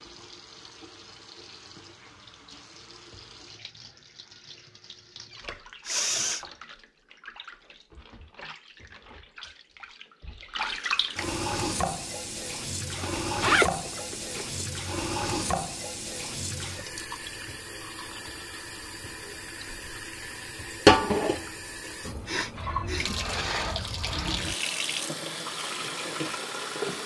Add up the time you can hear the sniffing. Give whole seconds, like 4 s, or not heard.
2 s.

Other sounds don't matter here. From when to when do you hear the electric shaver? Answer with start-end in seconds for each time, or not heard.
not heard.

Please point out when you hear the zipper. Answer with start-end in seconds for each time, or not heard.
12.9-14.7.